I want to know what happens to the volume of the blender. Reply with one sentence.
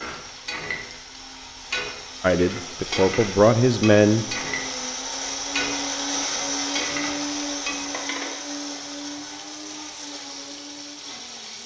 The volume of the blender goes up, then down.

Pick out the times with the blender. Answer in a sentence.
You can hear the blender from 0.0 to 11.6 s.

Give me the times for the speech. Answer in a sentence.
The speech can be heard from 2.2 to 4.2 s.